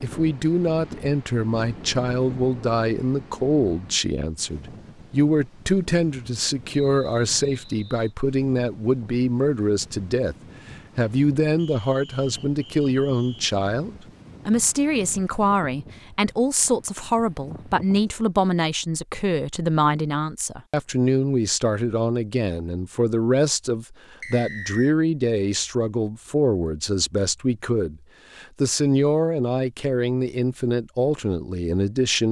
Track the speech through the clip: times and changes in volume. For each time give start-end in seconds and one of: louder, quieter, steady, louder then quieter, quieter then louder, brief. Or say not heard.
0.0-10.3 steady
10.9-32.2 steady.